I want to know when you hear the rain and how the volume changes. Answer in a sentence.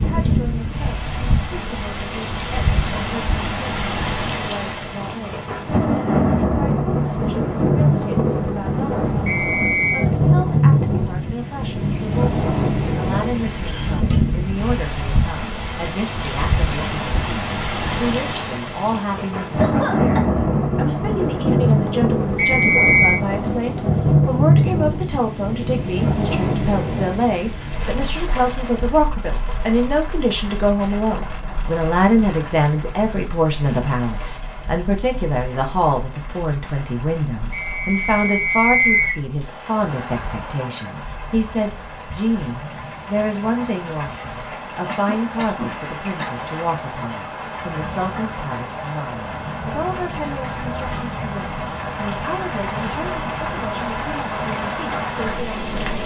You can hear the rain from 0.0 to 56.0 s, getting quieter then louder.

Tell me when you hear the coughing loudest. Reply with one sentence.
The loudest moment of the coughing is at 20 seconds.